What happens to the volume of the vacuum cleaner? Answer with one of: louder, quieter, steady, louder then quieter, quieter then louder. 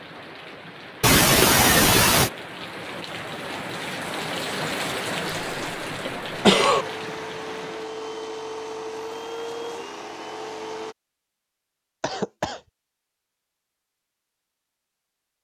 steady.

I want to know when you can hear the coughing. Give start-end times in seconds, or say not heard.
1.0-2.3, 5.2-6.8, 12.0-12.6.